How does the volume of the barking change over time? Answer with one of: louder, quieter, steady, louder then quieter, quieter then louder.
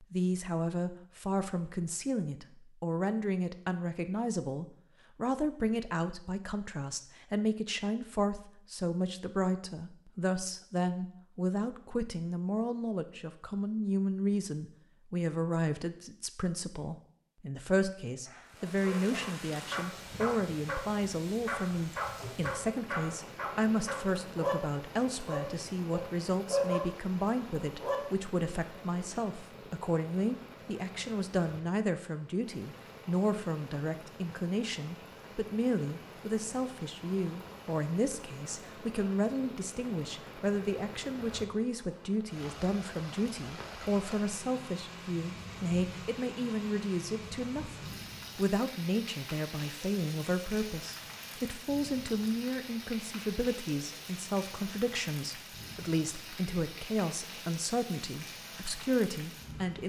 louder.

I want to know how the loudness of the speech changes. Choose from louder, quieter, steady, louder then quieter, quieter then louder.
steady.